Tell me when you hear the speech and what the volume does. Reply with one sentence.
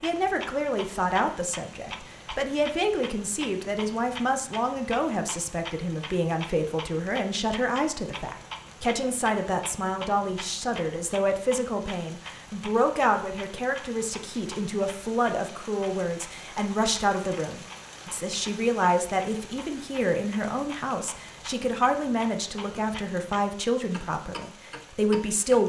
You can hear the speech from 0.0 to 25.6 s, at a steady volume.